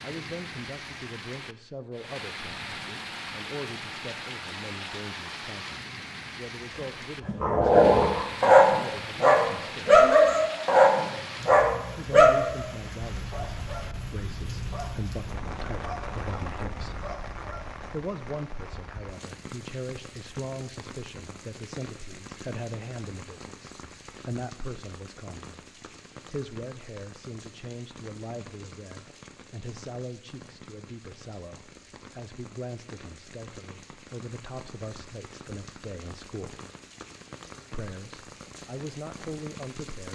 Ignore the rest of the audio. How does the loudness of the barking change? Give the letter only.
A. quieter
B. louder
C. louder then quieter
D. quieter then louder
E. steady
A.